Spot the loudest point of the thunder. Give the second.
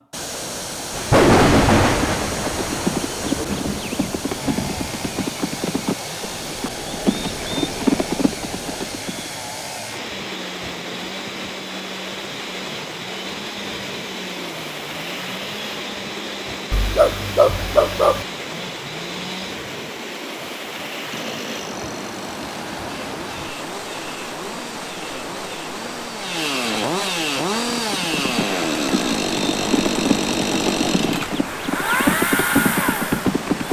1 s.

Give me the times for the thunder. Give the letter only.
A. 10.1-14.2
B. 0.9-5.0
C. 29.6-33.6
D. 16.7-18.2
B.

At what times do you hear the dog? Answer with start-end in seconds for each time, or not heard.
16.7-18.2.